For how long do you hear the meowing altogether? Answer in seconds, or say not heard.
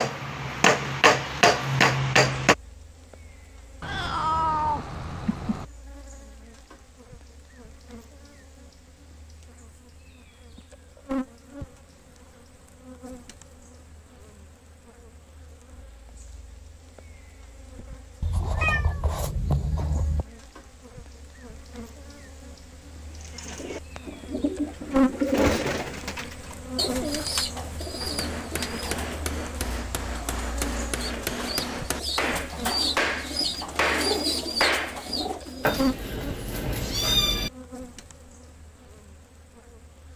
6 s.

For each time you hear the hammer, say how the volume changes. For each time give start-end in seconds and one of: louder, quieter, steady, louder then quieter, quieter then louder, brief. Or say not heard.
0.0-2.5 brief
28.0-35.0 louder.